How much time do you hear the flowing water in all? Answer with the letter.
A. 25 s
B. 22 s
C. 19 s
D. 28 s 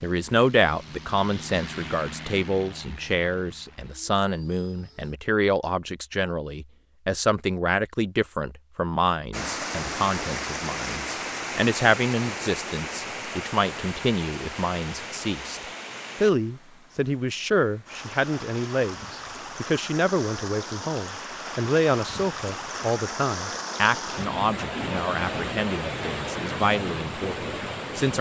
C.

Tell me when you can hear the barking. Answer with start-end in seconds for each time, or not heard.
not heard.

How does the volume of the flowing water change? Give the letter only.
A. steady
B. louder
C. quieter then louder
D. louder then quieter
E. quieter
C.